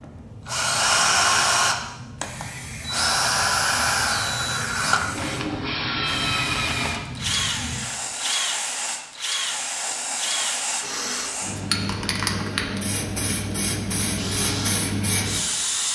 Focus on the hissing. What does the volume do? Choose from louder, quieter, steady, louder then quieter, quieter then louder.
louder.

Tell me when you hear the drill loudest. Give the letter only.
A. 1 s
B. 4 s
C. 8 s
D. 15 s
A.